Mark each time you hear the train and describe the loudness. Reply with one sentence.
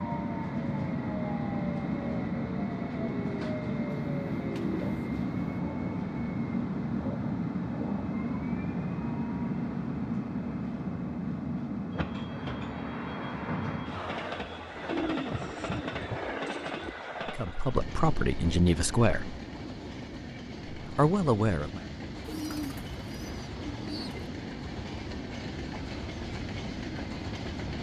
You can hear the train from 0.0 to 27.7 s, getting quieter.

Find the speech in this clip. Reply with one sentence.
The speech can be heard from 17.2 to 19.4 s and from 20.8 to 21.8 s.